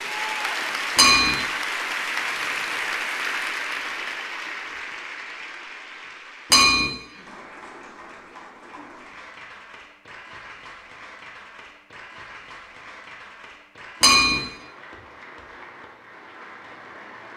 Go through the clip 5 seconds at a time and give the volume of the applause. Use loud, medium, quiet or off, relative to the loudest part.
loud, quiet, quiet, quiet.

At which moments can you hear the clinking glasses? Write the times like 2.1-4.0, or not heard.
0.9-1.4, 6.5-6.9, 14.0-14.4.